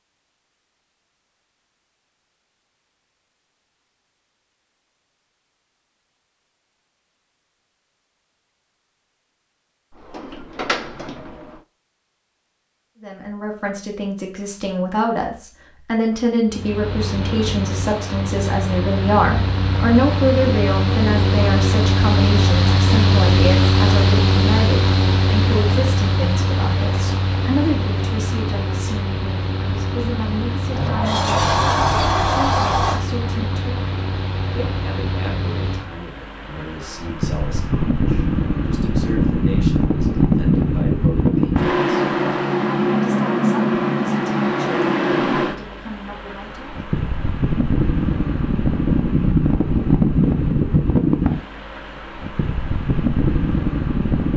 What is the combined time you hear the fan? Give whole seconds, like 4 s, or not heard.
38 s.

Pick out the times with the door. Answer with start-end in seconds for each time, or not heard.
10.0-11.6, 30.8-33.0.